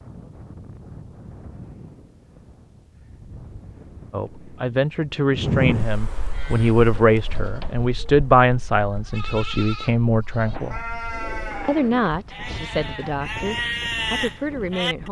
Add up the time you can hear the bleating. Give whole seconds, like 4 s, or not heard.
9 s.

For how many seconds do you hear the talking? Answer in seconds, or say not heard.
10 s.